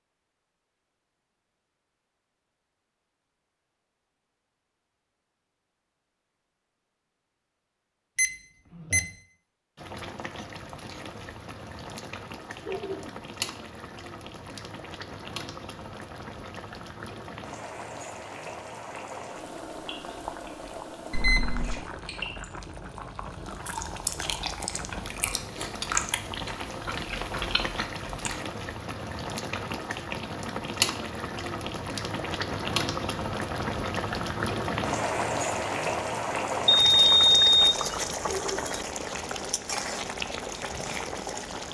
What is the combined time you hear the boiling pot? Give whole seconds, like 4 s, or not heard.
32 s.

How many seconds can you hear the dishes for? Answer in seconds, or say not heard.
not heard.